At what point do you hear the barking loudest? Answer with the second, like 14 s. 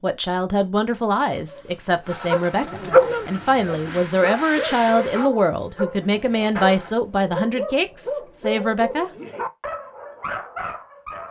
3 s.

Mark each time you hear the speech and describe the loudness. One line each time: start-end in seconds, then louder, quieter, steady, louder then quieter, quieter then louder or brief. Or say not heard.
0.0-9.1 steady.